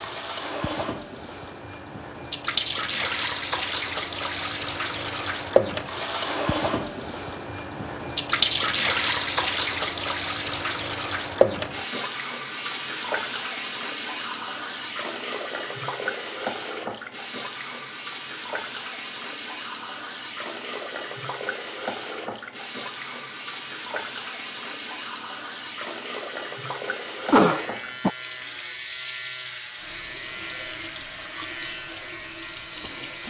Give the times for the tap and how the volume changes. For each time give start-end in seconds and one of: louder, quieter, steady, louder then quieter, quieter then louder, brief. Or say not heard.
0.0-33.2 quieter.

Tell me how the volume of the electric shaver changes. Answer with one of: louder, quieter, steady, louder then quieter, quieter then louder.
steady.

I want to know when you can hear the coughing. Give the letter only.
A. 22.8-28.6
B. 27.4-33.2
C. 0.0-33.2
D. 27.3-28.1
D.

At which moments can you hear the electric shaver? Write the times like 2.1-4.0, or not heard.
27.4-33.2.